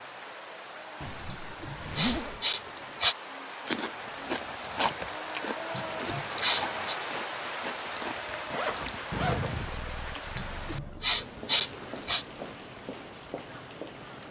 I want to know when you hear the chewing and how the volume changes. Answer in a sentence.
You can hear the chewing from 3.6 to 9.1 s, getting quieter.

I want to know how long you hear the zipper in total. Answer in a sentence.
The zipper can be heard for 3 seconds in total.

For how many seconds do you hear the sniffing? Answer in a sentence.
The sniffing can be heard for 5 seconds in total.